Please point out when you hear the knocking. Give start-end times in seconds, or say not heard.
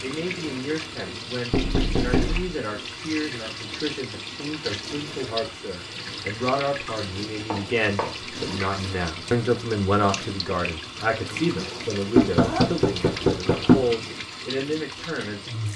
1.5-2.5, 7.5-8.2, 12.2-13.9.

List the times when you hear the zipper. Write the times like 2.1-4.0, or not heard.
11.2-12.7.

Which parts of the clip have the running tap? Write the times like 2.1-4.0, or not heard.
0.0-15.7.